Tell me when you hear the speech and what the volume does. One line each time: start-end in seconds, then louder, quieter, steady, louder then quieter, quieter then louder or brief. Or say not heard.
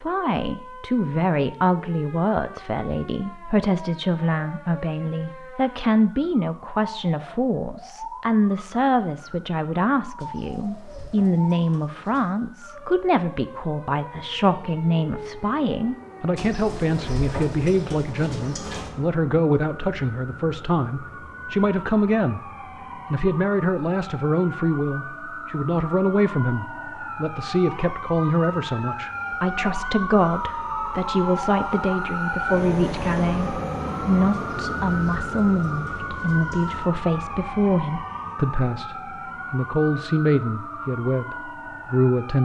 0.0-22.4 steady
23.1-42.3 steady.